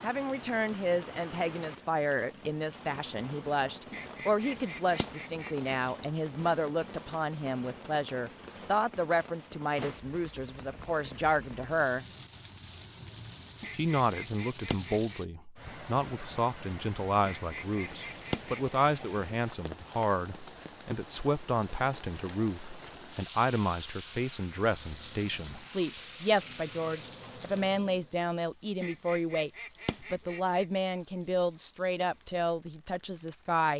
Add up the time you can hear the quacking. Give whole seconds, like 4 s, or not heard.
7 s.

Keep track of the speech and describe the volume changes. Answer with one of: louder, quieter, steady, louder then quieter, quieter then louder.
steady.